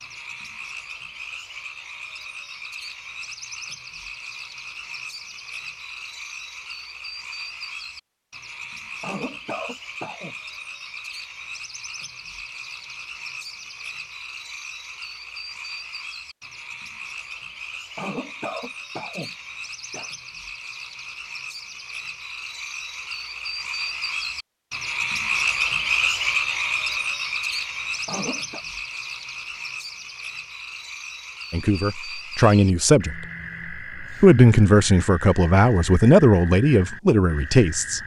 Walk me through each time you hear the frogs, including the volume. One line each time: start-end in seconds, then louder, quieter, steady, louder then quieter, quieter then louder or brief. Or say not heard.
0.0-38.0 louder then quieter.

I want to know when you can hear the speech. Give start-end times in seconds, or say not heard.
31.5-33.2, 34.0-38.0.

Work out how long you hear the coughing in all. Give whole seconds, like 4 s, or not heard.
4 s.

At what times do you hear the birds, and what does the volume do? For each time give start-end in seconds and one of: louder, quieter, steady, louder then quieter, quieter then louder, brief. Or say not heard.
not heard.